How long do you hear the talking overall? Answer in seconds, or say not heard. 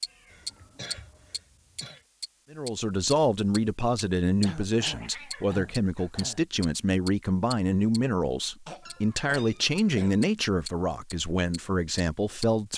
10 s.